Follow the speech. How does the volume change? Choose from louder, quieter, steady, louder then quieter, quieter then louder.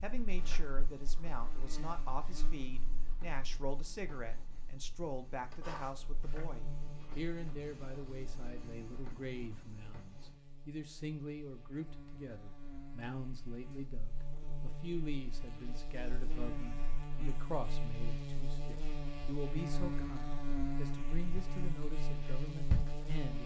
steady.